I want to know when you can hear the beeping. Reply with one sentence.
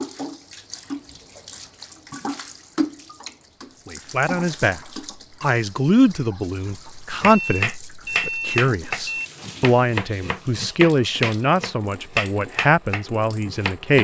The beeping can be heard from 7.2 to 9.3 s.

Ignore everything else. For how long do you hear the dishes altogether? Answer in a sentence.
You can't hear the dishes here.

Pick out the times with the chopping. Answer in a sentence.
The chopping can be heard from 7.2 to 13.9 s.